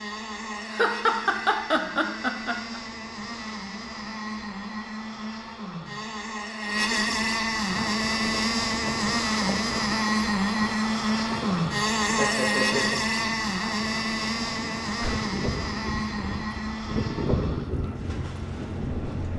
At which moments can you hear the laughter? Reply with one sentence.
The laughter can be heard from 0.7 to 2.8 s and from 12.2 to 13.0 s.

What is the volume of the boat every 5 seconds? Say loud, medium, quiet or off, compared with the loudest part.
medium, loud, loud, medium.